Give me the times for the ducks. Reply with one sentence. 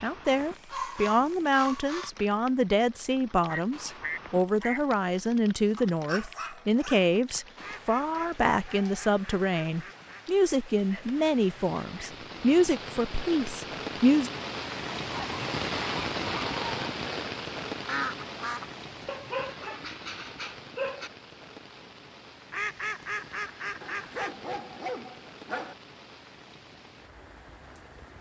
You can hear the ducks from 3.5 to 4.8 s, from 7.5 to 10.2 s, from 17.9 to 19.1 s and from 22.5 to 24.4 s.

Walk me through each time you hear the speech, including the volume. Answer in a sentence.
You can hear the speech from 0.0 to 14.3 s, at a steady volume.